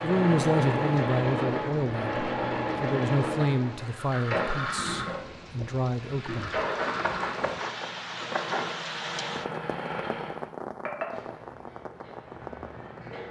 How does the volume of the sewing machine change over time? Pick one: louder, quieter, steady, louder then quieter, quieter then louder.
quieter.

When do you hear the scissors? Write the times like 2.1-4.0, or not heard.
6.6-8.8.